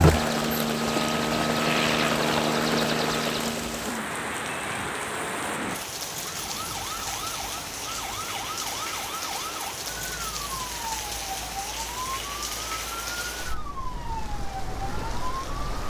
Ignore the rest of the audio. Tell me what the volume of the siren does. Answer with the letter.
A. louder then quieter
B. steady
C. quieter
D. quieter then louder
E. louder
B.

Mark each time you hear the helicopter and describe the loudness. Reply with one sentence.
The helicopter can be heard from 0.0 to 5.8 s, getting quieter.